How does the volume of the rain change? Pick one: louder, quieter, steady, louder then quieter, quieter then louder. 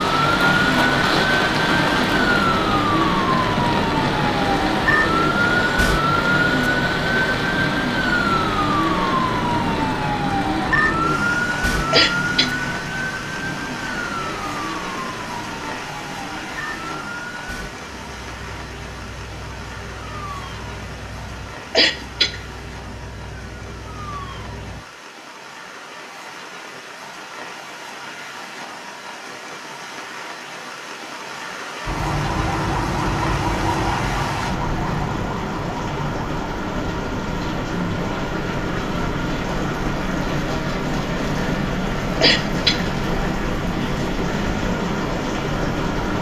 quieter then louder.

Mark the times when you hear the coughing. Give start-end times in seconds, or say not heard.
11.9-12.6, 21.7-22.4, 42.2-42.9.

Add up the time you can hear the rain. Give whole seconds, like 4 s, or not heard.
46 s.